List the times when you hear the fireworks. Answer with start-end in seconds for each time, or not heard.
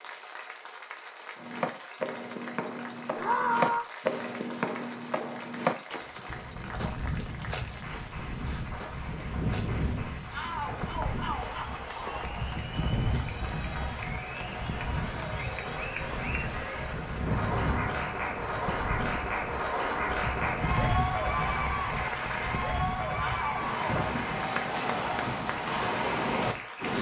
not heard.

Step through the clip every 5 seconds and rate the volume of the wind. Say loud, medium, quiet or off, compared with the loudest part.
off, medium, medium, medium, medium, loud.